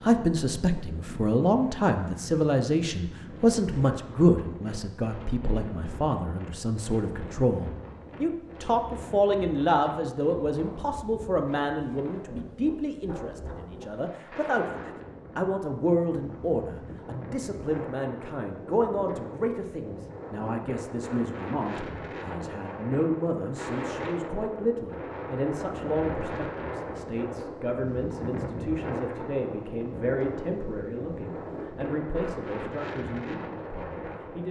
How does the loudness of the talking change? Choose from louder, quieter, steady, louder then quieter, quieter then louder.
quieter.